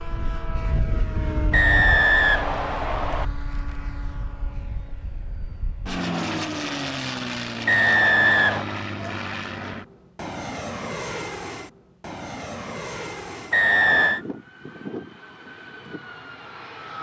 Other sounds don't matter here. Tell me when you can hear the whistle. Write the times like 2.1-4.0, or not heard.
1.5-3.2, 7.7-8.7, 13.5-14.2.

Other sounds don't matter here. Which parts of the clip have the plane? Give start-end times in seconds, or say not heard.
0.0-16.9.